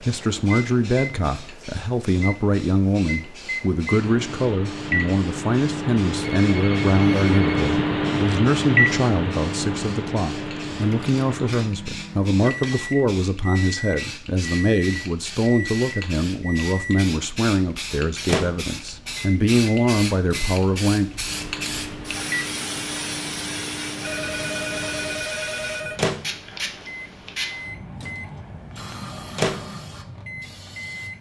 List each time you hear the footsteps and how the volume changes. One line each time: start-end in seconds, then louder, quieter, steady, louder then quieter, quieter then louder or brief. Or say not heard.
not heard.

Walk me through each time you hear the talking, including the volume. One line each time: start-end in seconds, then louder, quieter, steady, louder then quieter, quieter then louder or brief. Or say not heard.
0.0-21.1 steady.